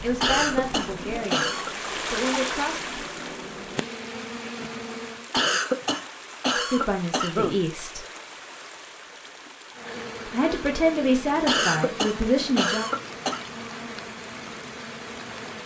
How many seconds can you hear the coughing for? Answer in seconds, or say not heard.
6 s.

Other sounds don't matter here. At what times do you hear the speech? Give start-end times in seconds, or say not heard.
0.0-2.8, 6.5-8.1, 10.2-12.9.